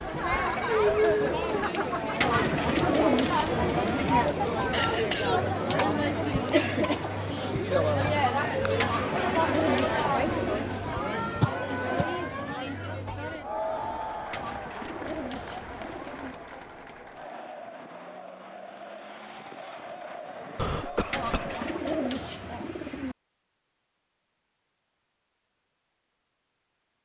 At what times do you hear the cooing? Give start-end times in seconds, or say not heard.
2.2-4.2, 8.8-10.8, 14.3-16.4, 21.1-23.1.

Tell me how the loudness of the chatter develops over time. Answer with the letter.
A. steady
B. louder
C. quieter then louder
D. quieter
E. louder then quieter
D.